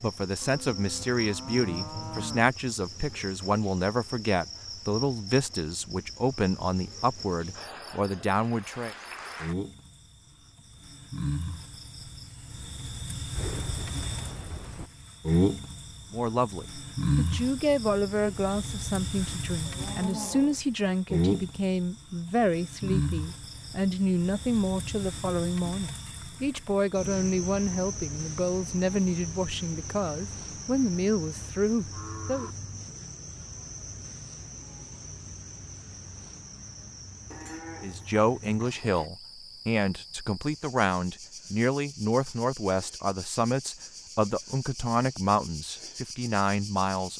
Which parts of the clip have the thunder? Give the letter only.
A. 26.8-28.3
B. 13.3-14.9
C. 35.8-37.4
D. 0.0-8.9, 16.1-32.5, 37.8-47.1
B.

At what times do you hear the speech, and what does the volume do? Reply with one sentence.
The speech can be heard from 0.0 to 8.9 s, at a steady volume; from 16.1 to 32.5 s, at a steady volume; and from 37.8 to 47.1 s, at a steady volume.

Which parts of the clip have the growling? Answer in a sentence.
You can't hear the growling here.